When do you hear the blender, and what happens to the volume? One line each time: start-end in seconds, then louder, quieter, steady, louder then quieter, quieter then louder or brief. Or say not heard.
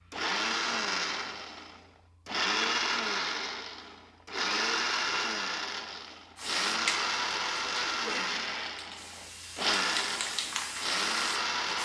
0.1-11.8 steady.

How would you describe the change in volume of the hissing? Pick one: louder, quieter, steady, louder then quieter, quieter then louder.
quieter then louder.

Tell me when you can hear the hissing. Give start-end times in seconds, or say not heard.
6.3-11.8.